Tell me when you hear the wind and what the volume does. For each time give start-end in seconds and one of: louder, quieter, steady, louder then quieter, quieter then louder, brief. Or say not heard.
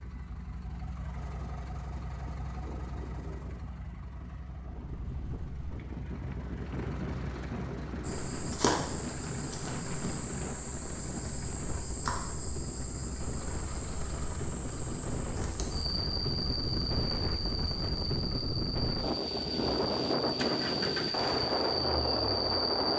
4.5-22.9 louder.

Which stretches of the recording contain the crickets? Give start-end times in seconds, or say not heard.
8.0-22.9.